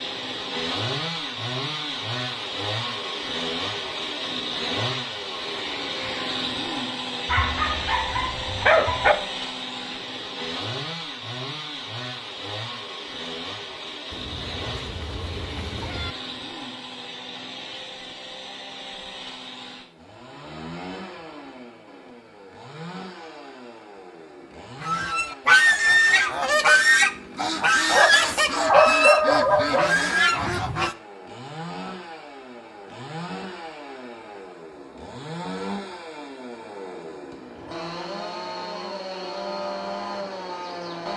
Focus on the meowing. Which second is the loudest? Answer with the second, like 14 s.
16 s.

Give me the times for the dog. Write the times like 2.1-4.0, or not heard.
7.2-9.2, 27.9-30.1.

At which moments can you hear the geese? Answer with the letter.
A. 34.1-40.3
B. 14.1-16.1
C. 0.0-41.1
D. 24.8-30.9
D.